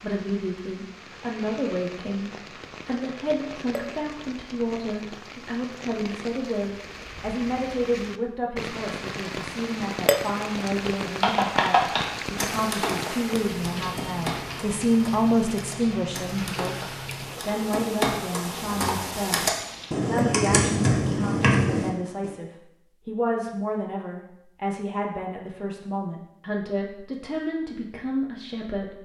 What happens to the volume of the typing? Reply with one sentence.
The volume of the typing goes down, then up.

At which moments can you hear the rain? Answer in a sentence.
The rain can be heard from 0.0 to 19.9 s.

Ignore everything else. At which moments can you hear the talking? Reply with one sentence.
You can hear the talking from 0.0 to 29.0 s.